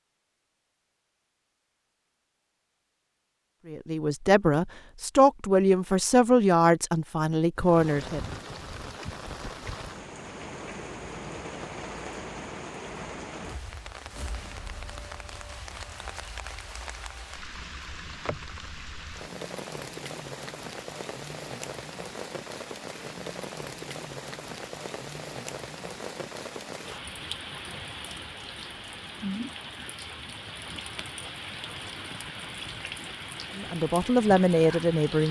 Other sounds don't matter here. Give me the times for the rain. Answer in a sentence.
You can hear the rain from 7.5 to 35.2 s.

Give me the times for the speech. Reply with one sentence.
The speech can be heard from 3.6 to 8.3 s and from 33.5 to 35.2 s.